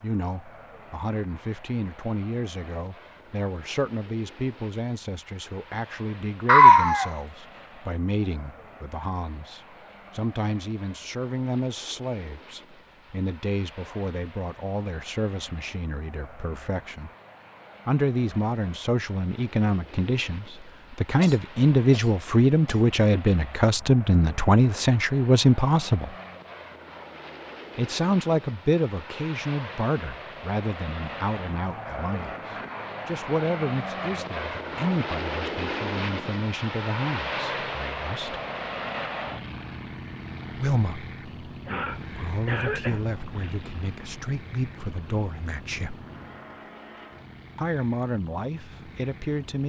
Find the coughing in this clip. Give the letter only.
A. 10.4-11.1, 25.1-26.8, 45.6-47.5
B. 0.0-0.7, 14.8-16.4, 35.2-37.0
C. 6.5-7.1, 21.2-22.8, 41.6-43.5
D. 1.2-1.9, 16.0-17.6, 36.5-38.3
C.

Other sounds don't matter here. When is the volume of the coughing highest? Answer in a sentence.
The loudest moment of the coughing is at 7 seconds.